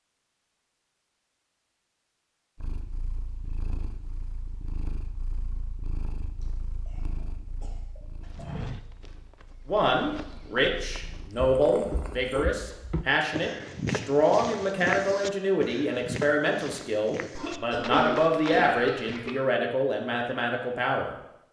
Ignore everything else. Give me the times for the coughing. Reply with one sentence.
The coughing can be heard from 6.4 to 7.0 s, from 7.6 to 8.6 s and from 17.4 to 19.4 s.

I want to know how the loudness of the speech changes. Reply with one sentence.
The loudness of the speech stays about the same.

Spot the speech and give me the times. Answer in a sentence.
You can hear the speech from 9.7 to 21.1 s.